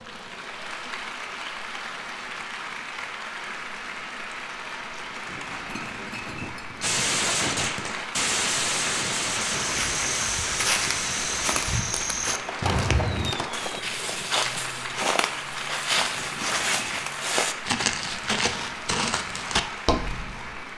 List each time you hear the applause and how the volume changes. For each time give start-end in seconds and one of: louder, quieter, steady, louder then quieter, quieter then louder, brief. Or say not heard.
0.0-20.7 steady.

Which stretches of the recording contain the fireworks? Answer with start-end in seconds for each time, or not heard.
6.8-13.8.